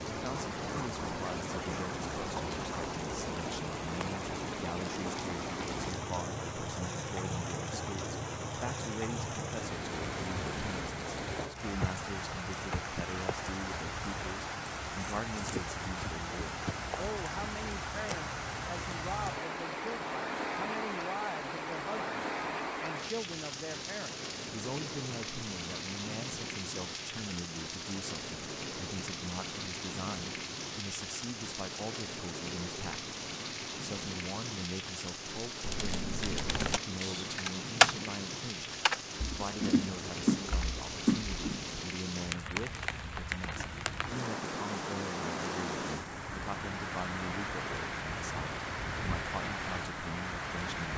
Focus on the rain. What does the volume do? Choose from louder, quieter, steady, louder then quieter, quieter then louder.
steady.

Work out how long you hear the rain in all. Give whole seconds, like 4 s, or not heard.
51 s.